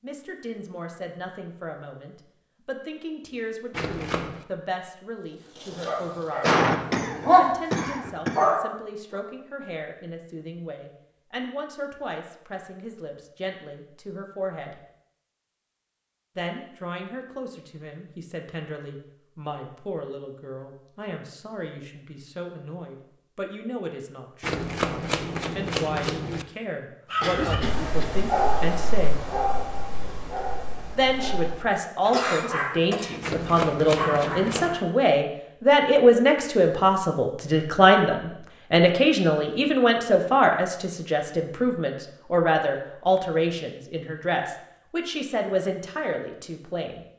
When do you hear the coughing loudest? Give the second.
7 s.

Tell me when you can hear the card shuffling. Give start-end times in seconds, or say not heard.
3.7-4.5, 24.4-26.4, 33.2-34.8.